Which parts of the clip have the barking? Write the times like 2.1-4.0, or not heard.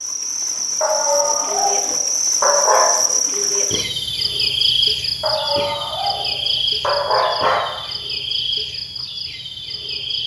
0.8-3.0, 5.2-7.7.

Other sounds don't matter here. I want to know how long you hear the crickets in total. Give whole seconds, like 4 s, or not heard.
10 s.